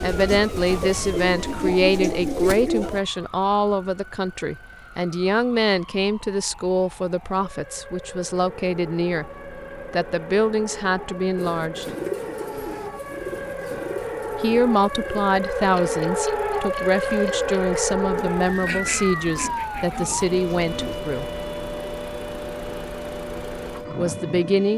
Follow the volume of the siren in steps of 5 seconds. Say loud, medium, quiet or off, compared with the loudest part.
quiet, quiet, medium, loud, medium.